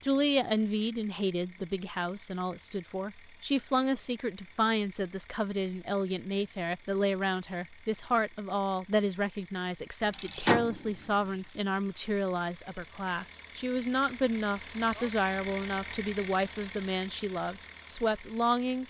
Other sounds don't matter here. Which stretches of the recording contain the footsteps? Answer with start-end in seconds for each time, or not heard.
not heard.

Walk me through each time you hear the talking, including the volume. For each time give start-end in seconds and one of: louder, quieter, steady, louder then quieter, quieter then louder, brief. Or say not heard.
0.0-18.8 steady.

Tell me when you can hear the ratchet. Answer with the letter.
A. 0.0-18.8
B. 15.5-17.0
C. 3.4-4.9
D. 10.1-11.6
D.